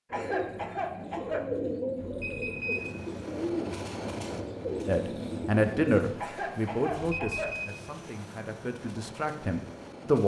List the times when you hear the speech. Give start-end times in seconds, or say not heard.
4.8-10.2.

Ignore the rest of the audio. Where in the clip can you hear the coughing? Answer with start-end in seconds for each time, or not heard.
0.1-1.5, 6.2-7.6.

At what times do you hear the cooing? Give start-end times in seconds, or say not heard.
0.1-6.0.